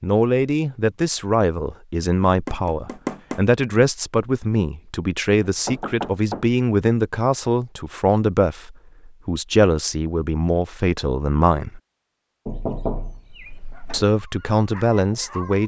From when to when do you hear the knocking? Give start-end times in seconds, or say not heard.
2.5-3.5, 5.5-6.5, 12.4-14.1.